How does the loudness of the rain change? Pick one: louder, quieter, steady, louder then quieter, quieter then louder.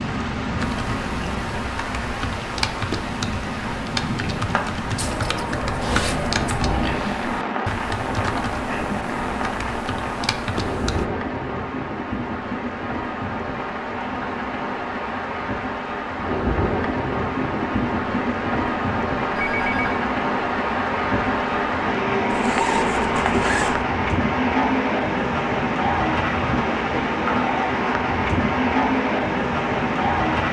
louder.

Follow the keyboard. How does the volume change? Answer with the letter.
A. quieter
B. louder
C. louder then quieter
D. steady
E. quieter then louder
D.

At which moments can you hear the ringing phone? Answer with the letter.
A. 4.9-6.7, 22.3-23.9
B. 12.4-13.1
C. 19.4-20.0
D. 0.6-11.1
C.